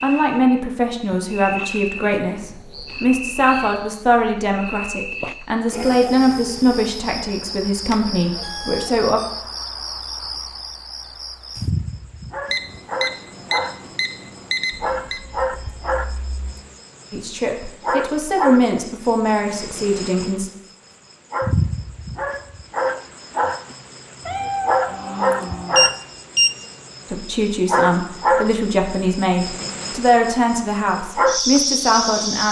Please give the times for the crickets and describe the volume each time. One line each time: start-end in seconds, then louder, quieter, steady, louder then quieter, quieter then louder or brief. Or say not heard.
0.0-32.4 louder.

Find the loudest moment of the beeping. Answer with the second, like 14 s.
26 s.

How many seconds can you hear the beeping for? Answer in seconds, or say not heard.
5 s.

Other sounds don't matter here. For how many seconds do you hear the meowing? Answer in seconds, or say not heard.
6 s.